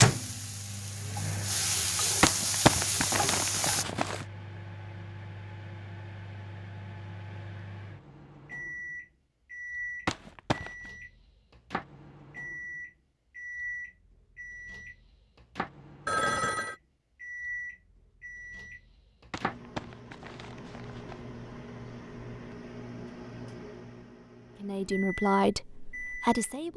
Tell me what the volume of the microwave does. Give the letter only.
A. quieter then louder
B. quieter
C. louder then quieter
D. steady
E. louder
D.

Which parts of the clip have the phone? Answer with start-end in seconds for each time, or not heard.
16.1-16.8.